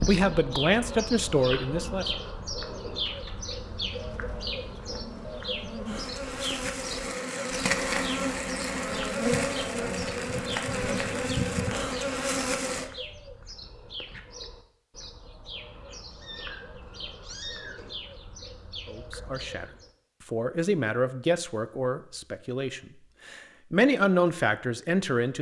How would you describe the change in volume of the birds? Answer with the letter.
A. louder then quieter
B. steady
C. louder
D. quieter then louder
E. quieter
E.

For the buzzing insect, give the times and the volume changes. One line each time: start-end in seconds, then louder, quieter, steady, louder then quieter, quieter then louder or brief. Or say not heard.
0.0-12.9 louder.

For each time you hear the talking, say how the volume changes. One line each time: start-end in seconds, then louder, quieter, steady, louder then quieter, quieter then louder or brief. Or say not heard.
0.1-2.0 brief
18.9-19.6 brief
20.3-25.3 quieter then louder.